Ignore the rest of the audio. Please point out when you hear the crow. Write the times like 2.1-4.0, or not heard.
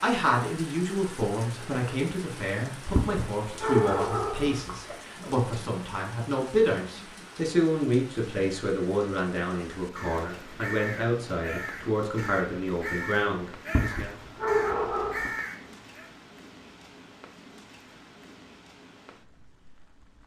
9.9-16.1.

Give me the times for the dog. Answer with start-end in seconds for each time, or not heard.
3.0-5.0, 13.7-15.3.